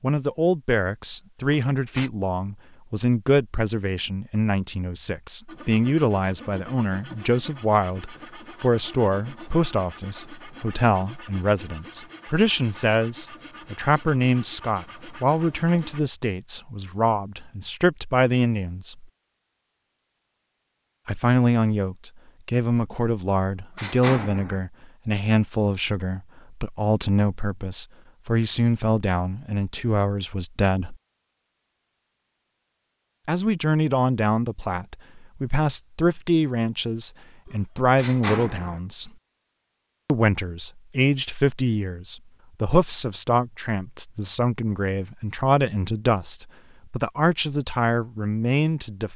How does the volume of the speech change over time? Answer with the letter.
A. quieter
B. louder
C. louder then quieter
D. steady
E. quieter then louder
D.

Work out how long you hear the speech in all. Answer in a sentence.
You can hear the speech for 44 seconds altogether.